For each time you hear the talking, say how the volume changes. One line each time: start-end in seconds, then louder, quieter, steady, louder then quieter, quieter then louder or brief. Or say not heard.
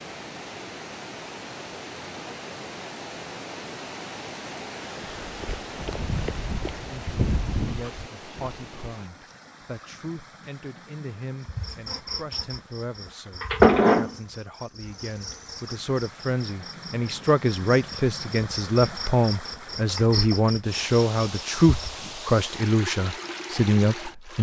6.9-24.3 louder.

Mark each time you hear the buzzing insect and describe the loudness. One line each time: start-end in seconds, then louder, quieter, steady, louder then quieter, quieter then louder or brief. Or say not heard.
11.4-21.9 quieter then louder.